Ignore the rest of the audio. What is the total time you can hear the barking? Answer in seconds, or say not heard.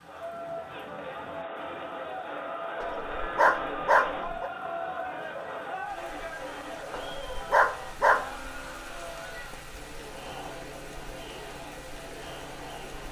3 s.